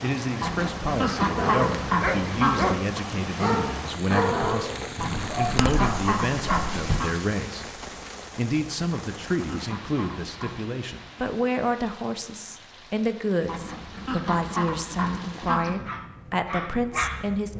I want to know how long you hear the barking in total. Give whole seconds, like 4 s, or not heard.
7 s.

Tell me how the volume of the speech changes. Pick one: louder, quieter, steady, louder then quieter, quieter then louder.
steady.